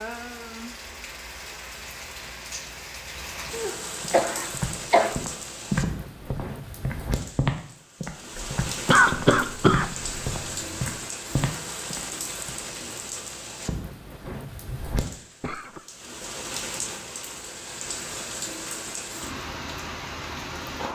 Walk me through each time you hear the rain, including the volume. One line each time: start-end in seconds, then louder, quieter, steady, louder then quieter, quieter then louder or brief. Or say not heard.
0.0-20.8 steady.